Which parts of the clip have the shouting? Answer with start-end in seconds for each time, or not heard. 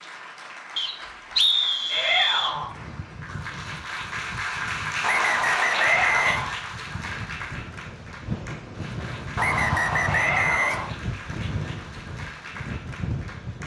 1.9-2.8, 5.7-6.5, 10.1-10.9.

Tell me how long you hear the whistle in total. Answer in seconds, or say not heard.
5 s.